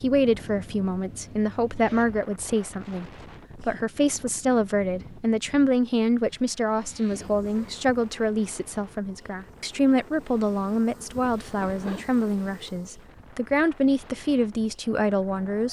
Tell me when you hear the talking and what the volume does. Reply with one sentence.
You can hear the talking from 0.0 to 15.6 s, at a steady volume.